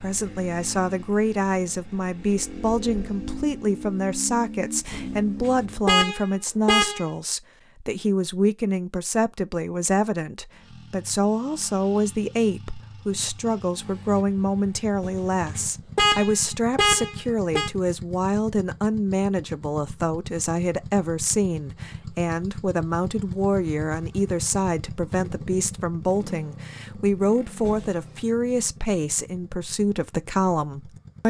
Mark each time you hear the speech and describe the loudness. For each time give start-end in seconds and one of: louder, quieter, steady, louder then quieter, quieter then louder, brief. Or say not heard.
0.0-31.2 steady.